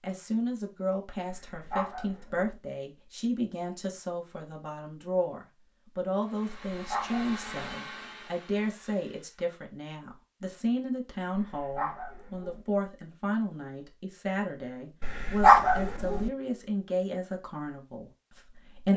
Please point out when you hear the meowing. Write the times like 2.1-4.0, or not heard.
not heard.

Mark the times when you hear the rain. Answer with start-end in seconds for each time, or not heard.
not heard.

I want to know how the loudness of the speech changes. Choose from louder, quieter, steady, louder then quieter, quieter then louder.
steady.